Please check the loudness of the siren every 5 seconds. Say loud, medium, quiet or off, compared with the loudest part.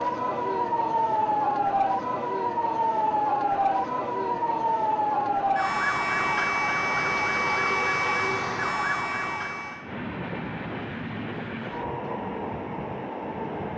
loud, loud, off.